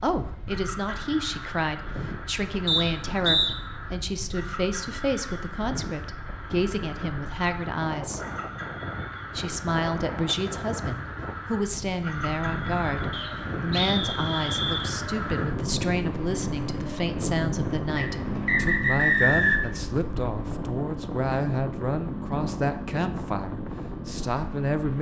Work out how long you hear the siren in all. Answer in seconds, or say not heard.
not heard.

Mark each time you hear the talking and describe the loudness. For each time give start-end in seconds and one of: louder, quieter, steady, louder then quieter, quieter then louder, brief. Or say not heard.
0.0-8.2 steady
9.3-24.9 steady.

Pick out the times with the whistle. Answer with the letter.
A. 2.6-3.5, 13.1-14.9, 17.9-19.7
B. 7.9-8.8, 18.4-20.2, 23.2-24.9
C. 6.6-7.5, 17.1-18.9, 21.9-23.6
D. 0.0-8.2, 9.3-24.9
A.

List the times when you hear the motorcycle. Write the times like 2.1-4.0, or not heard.
0.1-24.9.